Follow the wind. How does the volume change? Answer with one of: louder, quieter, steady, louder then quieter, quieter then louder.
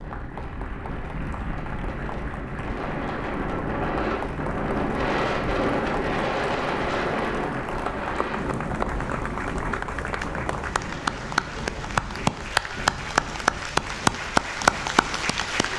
louder then quieter.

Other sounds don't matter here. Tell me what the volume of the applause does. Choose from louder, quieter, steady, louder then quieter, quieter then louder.
louder.